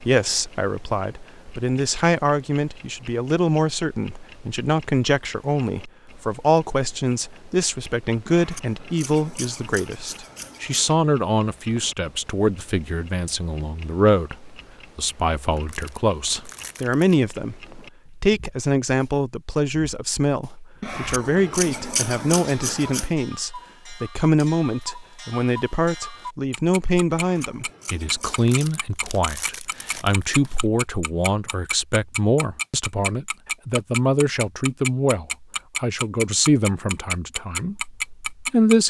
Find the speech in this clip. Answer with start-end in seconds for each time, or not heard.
0.0-38.8.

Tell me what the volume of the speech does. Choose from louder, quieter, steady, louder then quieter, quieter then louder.
steady.